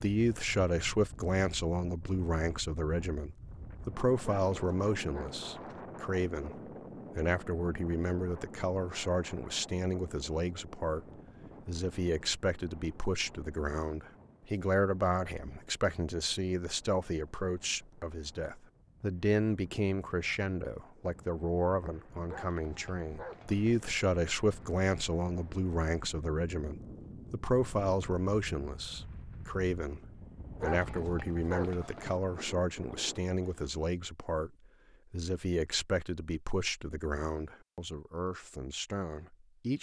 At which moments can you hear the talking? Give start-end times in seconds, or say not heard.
0.0-30.0, 30.6-34.5, 35.1-39.7.